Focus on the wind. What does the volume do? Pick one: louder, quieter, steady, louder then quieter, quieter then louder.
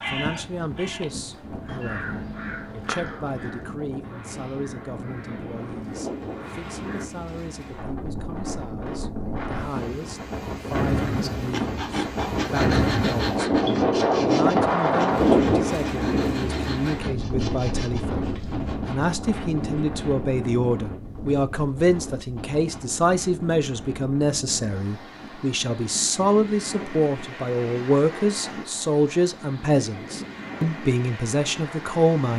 louder then quieter.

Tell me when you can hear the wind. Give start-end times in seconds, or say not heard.
0.0-32.3.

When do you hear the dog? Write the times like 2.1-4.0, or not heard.
not heard.